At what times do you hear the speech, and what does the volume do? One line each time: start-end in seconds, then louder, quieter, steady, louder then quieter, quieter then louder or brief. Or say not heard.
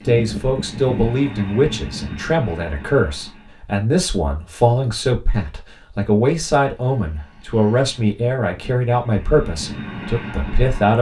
0.1-10.9 steady.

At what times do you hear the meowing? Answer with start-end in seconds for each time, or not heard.
not heard.